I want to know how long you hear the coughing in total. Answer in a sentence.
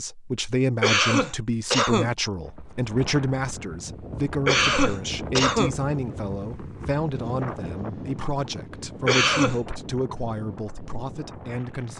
You can hear the coughing for 3 seconds altogether.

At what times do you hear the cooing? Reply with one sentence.
The cooing can't be heard in this clip.